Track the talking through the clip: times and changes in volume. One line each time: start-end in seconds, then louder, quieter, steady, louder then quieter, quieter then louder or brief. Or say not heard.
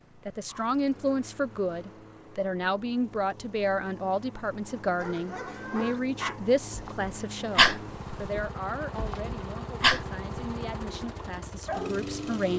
0.2-12.5 quieter.